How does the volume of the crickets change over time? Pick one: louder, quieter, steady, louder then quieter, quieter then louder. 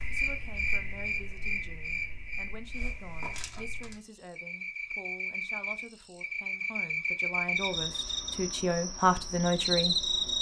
quieter then louder.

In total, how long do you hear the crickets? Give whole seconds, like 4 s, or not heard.
10 s.